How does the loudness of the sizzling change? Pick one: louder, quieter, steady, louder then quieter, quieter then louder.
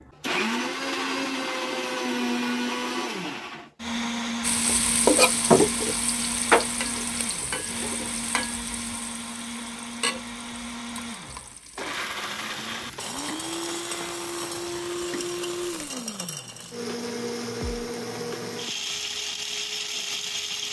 quieter.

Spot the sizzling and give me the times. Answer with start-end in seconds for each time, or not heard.
4.4-15.9.